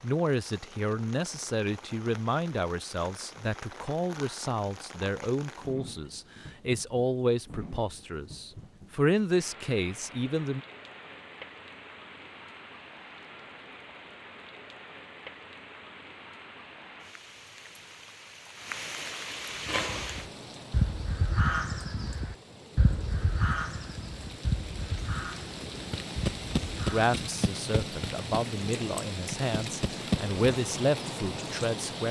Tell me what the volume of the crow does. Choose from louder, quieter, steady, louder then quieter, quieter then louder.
quieter.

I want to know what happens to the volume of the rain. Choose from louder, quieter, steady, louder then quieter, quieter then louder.
louder.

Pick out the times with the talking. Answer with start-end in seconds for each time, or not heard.
0.0-10.6, 26.9-32.0.